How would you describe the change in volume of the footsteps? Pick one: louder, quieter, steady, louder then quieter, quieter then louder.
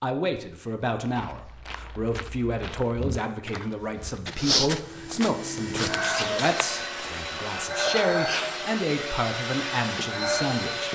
louder then quieter.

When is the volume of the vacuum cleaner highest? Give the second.
8 s.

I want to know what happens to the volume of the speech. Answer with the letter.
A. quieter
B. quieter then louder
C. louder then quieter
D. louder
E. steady
E.